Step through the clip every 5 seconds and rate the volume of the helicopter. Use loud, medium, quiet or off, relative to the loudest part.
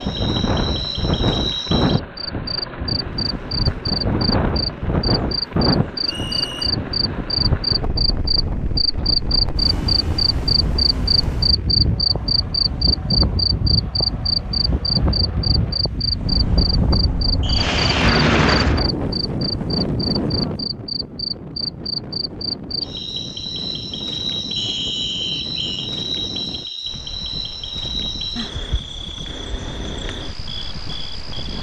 quiet, quiet, quiet, loud, off, off, off.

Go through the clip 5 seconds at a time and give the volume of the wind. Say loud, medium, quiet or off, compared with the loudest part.
loud, loud, loud, loud, medium, quiet, quiet.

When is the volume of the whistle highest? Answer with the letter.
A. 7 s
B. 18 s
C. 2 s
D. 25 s
D.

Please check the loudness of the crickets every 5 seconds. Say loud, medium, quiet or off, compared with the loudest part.
medium, loud, loud, medium, medium, medium, quiet.